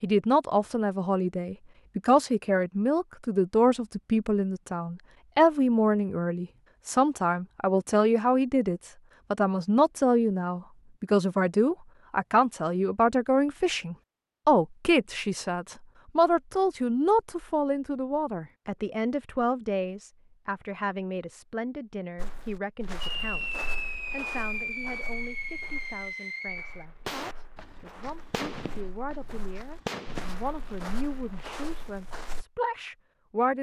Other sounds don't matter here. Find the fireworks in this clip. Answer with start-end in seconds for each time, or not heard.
23.0-30.4.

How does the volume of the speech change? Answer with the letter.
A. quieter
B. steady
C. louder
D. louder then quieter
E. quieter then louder
A.